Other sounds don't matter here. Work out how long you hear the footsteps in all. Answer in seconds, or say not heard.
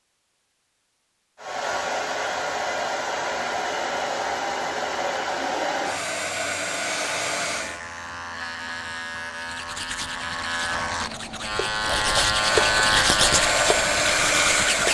not heard.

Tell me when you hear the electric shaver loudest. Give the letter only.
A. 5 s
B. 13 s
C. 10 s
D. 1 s
B.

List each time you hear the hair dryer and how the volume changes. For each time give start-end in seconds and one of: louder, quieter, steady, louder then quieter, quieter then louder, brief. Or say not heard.
1.4-7.8 steady
12.3-14.8 brief.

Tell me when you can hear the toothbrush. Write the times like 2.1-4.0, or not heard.
9.3-14.8.